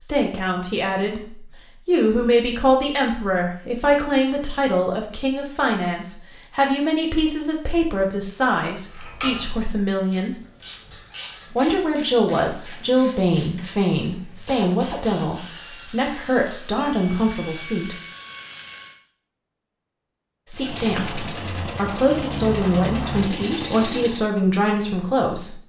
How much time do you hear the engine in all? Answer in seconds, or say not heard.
4 s.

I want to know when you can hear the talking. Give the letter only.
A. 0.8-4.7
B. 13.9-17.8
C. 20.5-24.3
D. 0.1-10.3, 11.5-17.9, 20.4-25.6
D.